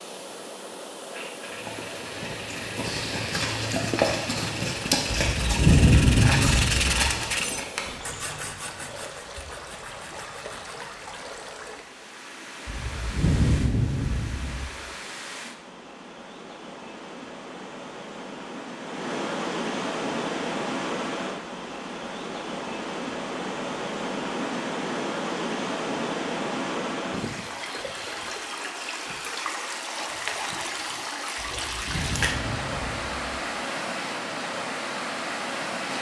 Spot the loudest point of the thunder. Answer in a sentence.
The loudest moment of the thunder is at 6 seconds.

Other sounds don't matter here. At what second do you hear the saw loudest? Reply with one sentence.
The volume of the saw peaks at 7 seconds.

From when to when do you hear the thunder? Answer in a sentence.
The thunder can be heard from 5.1 to 7.0 s, from 12.7 to 14.6 s and from 31.4 to 33.4 s.